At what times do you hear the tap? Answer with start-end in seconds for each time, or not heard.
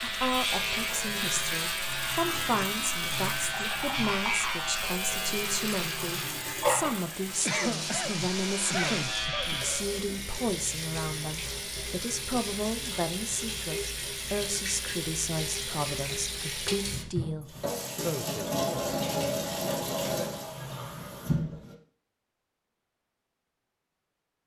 0.0-21.8.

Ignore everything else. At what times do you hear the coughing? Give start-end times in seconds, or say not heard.
7.5-9.7.